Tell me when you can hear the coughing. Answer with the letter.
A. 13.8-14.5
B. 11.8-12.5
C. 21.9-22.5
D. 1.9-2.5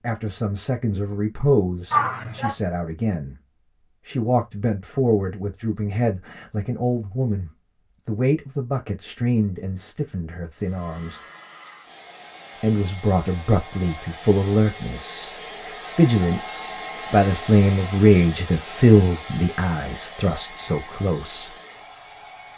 D.